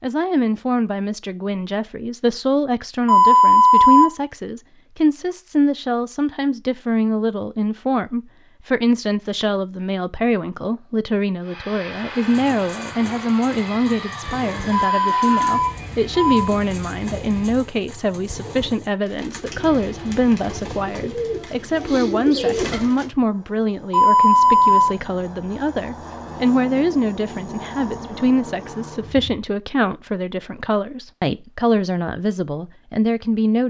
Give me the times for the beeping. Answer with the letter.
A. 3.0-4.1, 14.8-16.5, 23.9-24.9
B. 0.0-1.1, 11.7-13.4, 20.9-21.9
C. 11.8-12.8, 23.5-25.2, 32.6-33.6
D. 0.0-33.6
A.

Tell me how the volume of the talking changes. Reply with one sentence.
The loudness of the talking stays about the same.